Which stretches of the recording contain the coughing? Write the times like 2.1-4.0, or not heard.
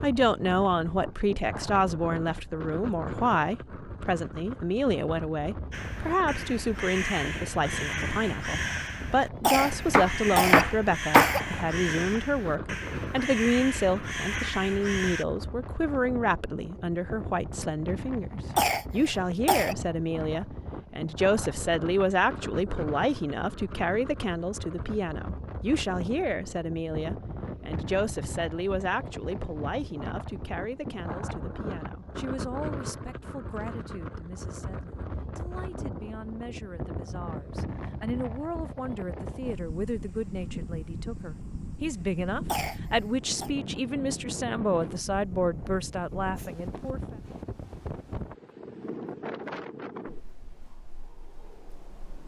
9.4-11.4, 18.6-19.8, 42.5-43.5.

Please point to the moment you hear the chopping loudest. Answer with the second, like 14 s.
11 s.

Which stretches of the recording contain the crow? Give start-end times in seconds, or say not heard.
5.7-15.2.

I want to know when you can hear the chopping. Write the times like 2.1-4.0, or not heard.
9.9-11.3.